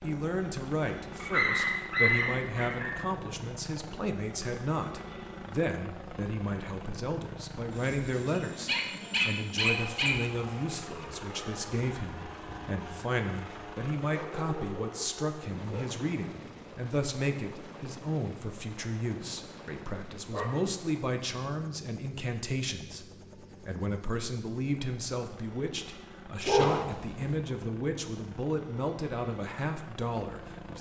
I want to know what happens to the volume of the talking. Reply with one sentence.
The volume of the talking stays about the same.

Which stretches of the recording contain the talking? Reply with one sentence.
You can hear the talking from 0.0 to 30.7 s.